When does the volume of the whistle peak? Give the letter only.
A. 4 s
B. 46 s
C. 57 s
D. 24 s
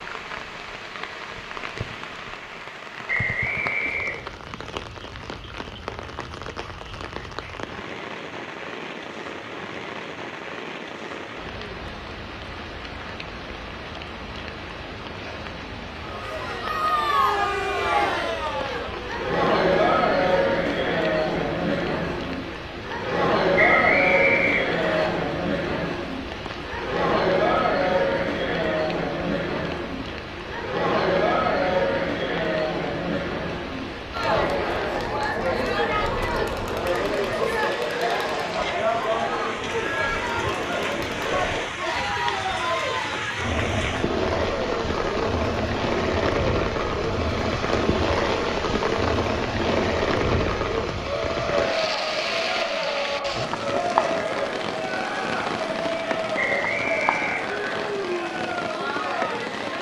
D.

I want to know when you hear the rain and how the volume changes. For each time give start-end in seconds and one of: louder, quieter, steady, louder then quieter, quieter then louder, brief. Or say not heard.
0.0-59.7 louder.